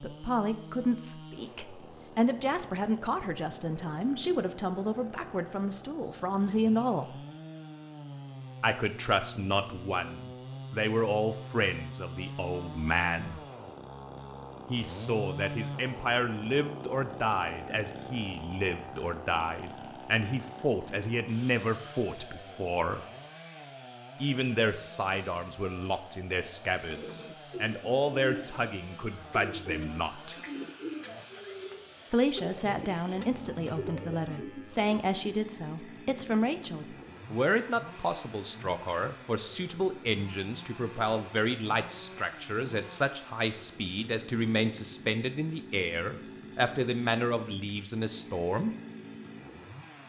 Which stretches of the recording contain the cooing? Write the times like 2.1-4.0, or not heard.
26.9-34.9.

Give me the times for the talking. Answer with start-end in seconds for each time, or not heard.
0.0-7.2, 8.6-13.4, 14.7-23.1, 24.2-30.4, 32.1-48.7.